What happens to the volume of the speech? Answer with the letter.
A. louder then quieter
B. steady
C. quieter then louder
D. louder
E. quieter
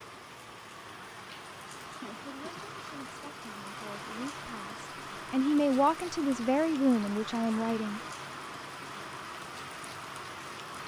D.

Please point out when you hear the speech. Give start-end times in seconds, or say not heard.
2.2-8.0.